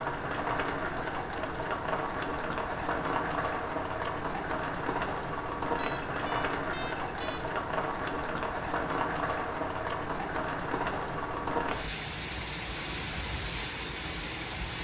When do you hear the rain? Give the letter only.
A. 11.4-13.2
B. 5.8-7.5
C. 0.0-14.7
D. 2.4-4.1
C.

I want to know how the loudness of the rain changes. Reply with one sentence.
The loudness of the rain stays about the same.